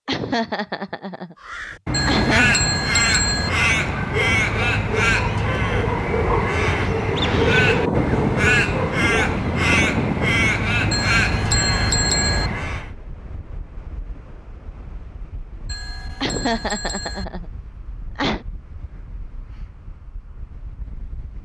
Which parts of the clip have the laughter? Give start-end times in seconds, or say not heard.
0.1-2.5, 16.2-18.4.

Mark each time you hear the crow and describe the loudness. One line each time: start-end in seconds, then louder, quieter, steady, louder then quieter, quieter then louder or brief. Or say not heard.
1.4-12.9 steady.